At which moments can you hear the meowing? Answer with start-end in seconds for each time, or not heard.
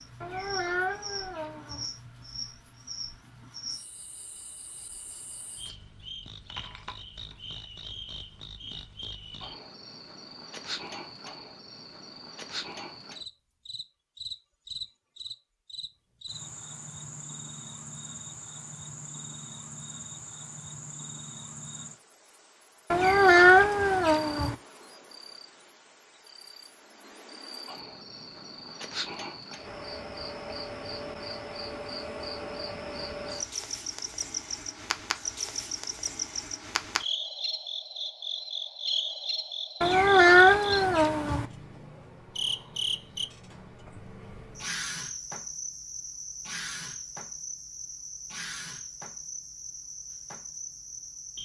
0.2-1.9, 22.9-24.6, 39.8-41.5.